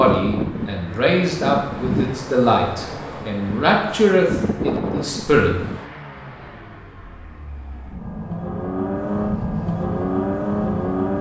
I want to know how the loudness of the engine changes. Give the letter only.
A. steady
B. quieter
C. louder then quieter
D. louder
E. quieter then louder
D.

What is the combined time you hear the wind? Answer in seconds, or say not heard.
6 s.